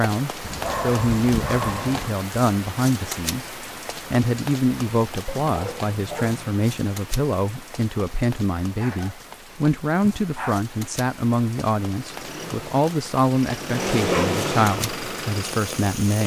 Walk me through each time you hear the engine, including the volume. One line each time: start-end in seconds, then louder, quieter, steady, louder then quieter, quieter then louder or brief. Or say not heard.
12.0-16.2 louder then quieter.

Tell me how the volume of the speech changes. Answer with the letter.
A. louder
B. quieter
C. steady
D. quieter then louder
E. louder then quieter
C.